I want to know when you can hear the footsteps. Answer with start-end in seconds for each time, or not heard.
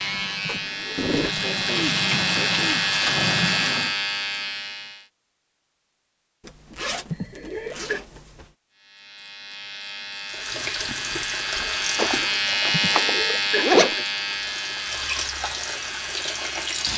not heard.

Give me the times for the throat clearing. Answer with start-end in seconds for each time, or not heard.
0.6-2.9, 7.1-8.0, 12.7-14.1.